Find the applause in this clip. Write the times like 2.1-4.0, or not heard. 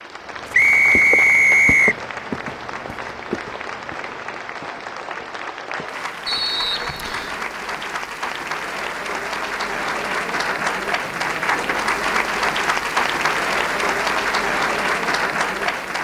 0.0-15.9.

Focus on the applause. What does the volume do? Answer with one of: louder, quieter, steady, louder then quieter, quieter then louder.
louder.